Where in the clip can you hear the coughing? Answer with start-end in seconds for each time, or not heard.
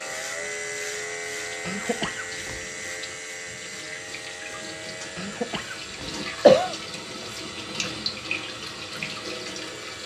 1.6-2.6, 5.2-6.8.